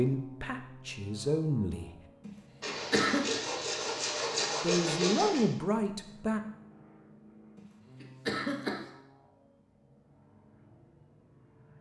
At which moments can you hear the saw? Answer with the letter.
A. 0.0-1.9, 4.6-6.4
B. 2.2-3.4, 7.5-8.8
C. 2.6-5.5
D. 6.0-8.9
C.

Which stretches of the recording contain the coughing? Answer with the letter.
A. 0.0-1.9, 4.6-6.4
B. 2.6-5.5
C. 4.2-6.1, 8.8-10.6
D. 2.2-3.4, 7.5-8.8
D.